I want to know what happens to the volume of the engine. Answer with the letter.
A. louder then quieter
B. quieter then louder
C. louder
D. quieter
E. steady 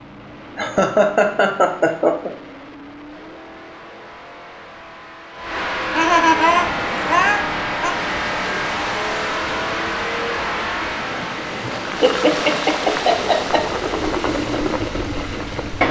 C.